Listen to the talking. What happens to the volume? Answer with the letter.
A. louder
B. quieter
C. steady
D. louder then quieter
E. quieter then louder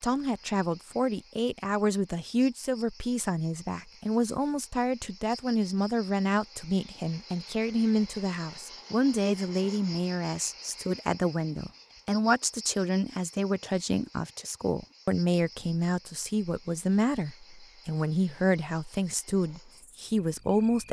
C.